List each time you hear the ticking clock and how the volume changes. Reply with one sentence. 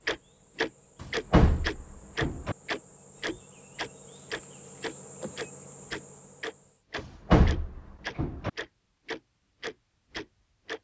You can hear the ticking clock from 0.1 to 10.7 s, getting quieter.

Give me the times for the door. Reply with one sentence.
The door can be heard from 1.0 to 2.5 s and from 7.0 to 8.5 s.